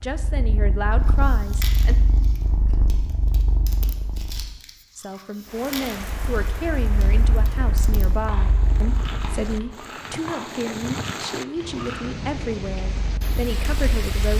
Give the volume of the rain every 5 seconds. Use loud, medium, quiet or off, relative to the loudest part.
off, medium, loud.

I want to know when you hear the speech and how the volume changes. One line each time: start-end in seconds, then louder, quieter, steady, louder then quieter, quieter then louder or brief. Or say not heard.
0.0-1.9 brief
5.0-14.3 steady.